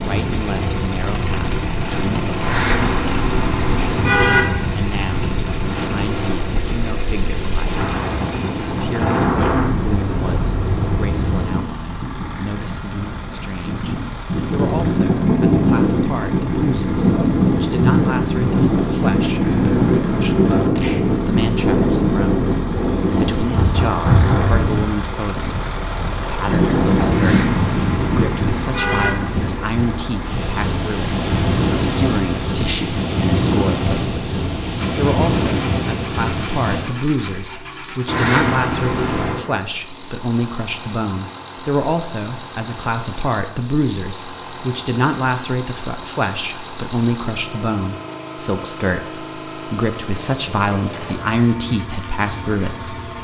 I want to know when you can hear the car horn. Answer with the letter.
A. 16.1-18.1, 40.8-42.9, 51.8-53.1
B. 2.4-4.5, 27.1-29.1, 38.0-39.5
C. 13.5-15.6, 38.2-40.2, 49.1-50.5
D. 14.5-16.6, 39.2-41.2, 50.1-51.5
B.